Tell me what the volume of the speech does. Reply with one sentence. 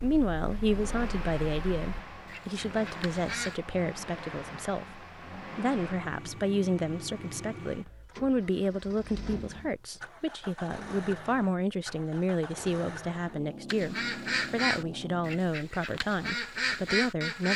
The loudness of the speech stays about the same.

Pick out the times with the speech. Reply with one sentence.
You can hear the speech from 0.0 to 17.5 s.